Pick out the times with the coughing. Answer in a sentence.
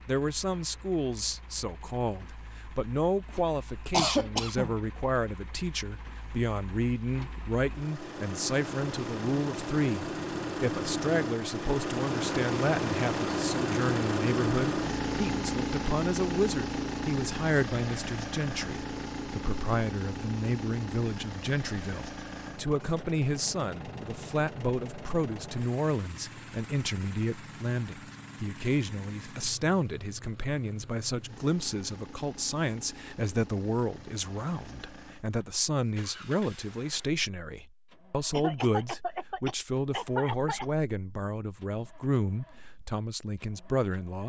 You can hear the coughing from 3.9 to 4.8 s and from 38.3 to 40.6 s.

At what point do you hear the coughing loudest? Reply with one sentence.
The loudest moment of the coughing is at 4 seconds.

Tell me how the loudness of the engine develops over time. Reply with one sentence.
The volume of the engine goes up, then down.